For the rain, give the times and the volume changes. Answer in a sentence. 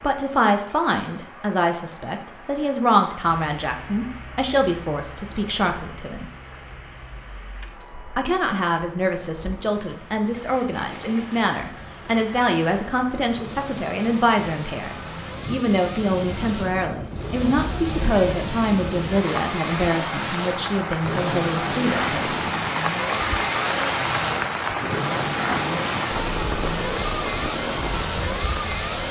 The rain can be heard from 0.0 to 29.0 s, getting louder.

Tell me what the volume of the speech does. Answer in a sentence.
The loudness of the speech stays about the same.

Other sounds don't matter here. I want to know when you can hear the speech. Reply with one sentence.
You can hear the speech from 0.0 to 6.3 s and from 8.2 to 22.4 s.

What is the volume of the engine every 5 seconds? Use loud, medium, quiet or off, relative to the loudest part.
quiet, quiet, quiet, medium, loud, loud.